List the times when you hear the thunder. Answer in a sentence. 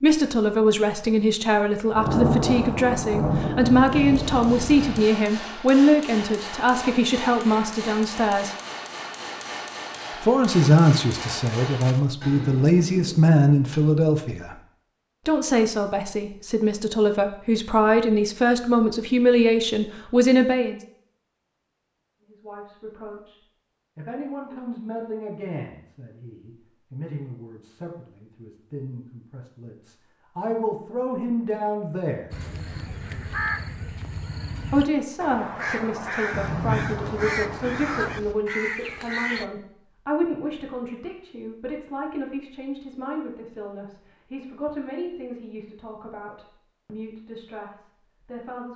You can hear the thunder from 1.9 to 5.1 s and from 36.3 to 38.4 s.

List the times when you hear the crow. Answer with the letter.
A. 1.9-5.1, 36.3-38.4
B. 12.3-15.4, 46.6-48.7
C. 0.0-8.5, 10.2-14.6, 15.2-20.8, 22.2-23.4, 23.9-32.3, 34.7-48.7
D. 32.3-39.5
D.